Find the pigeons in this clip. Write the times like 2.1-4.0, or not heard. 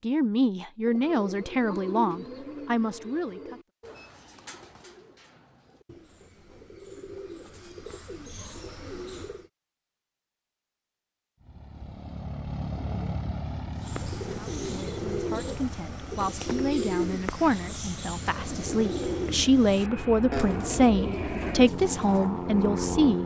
0.8-9.5, 13.8-22.4.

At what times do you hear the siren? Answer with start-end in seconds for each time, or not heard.
not heard.